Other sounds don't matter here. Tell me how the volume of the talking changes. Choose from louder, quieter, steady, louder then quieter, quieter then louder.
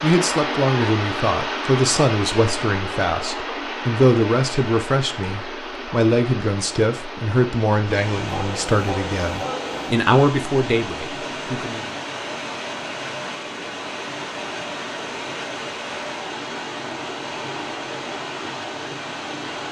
steady.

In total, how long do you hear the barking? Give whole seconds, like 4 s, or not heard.
2 s.